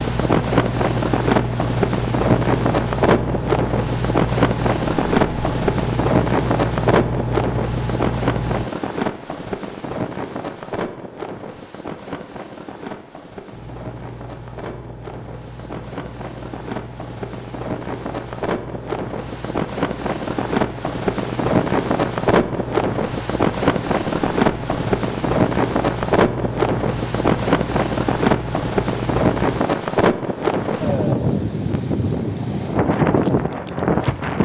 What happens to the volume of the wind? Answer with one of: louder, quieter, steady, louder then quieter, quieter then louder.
quieter then louder.